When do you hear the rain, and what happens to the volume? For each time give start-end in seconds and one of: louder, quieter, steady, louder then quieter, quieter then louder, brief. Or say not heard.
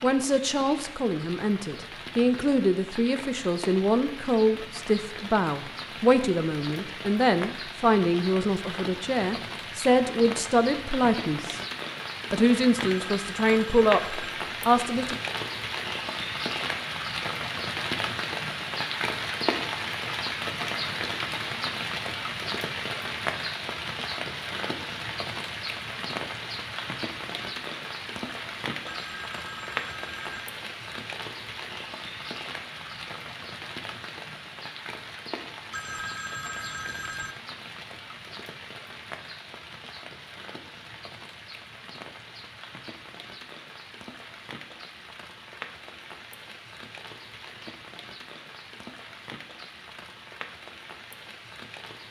0.0-52.0 louder then quieter.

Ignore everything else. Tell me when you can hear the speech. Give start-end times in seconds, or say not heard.
0.0-11.6, 12.3-15.2.